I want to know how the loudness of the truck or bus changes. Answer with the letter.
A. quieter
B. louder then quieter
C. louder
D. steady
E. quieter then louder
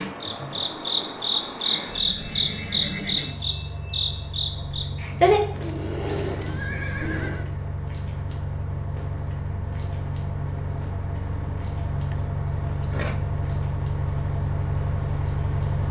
C.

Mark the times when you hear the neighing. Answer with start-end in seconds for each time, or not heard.
1.6-3.4, 5.5-7.5, 12.1-13.2.